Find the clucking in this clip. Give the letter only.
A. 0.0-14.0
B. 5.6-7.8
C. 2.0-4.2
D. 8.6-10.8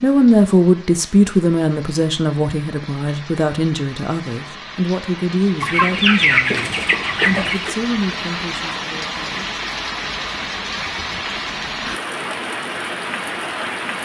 B.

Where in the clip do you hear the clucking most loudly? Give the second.
6 s.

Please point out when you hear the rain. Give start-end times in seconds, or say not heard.
0.0-14.0.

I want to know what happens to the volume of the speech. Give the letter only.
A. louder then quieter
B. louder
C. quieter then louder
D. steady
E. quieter
E.